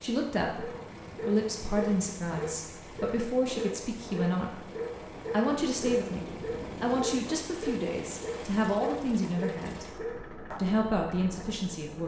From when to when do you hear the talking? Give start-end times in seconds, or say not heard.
0.0-4.7, 5.3-9.8, 10.6-12.0.